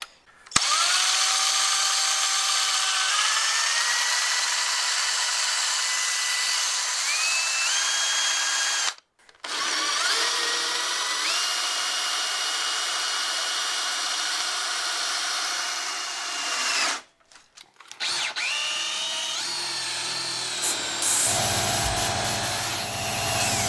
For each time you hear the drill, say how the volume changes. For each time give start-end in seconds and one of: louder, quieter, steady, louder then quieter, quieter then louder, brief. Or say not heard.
0.0-23.6 quieter.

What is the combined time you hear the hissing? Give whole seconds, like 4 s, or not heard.
3 s.